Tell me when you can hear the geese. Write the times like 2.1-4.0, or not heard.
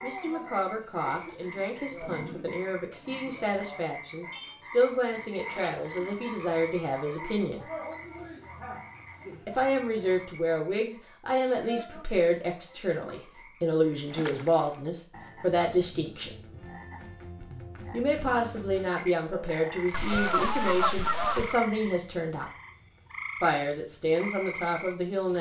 19.9-21.6.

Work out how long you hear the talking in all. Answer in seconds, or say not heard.
21 s.